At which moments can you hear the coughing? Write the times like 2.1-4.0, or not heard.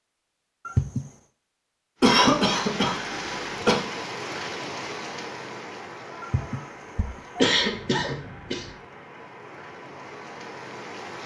2.0-3.9, 7.4-8.7.